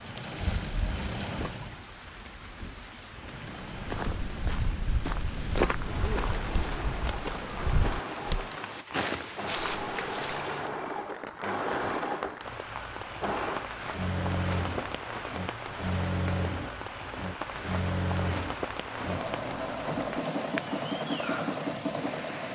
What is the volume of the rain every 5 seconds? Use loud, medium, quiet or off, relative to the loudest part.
medium, loud, loud, loud, loud.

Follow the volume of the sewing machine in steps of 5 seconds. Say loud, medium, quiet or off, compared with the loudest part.
medium, medium, loud, loud, loud.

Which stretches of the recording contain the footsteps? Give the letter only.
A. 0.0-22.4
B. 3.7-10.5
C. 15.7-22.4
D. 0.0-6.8
B.